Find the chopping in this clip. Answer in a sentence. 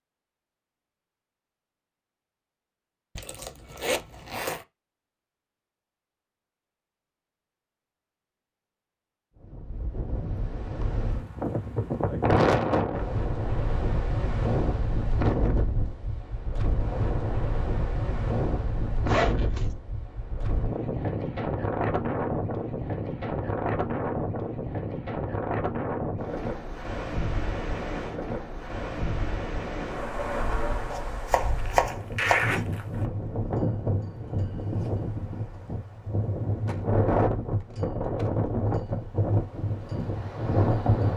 You can hear the chopping from 30.9 to 32.6 s.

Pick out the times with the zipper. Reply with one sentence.
You can hear the zipper from 3.1 to 4.7 s, from 19.1 to 19.6 s and from 31.6 to 33.0 s.